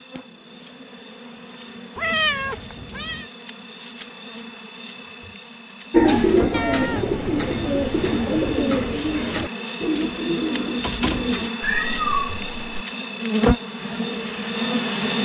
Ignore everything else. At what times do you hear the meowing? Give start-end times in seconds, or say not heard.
1.9-3.2, 6.5-8.6, 11.6-12.8.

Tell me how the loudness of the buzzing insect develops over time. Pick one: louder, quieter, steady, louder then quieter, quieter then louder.
louder.